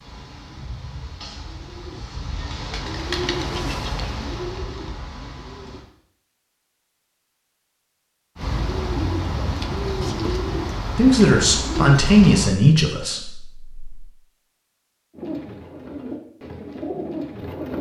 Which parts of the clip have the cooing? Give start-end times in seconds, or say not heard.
0.0-5.8, 8.3-12.6, 15.1-17.7.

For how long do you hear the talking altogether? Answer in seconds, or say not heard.
3 s.